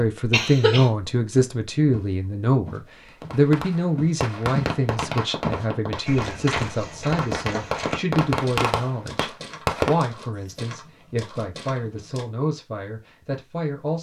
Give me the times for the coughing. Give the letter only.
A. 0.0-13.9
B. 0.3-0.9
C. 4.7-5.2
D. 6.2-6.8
B.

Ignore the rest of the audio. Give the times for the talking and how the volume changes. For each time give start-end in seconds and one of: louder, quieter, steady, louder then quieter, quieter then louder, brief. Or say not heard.
0.0-13.9 quieter.